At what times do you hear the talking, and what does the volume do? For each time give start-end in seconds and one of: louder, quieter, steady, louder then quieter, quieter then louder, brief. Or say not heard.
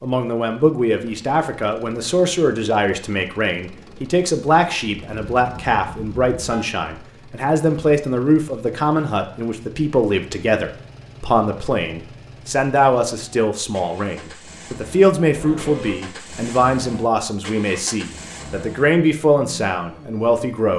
0.0-20.7 steady.